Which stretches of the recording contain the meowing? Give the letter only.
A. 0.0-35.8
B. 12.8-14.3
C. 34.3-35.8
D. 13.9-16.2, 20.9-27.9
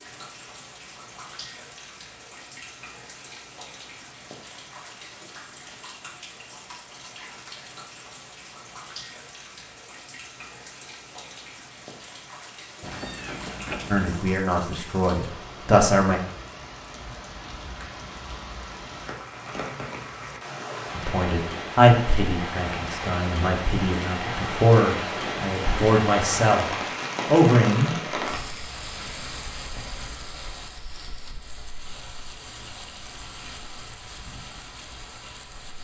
B.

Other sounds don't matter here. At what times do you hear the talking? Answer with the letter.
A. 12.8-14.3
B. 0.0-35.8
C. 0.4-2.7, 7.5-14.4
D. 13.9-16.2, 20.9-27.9
D.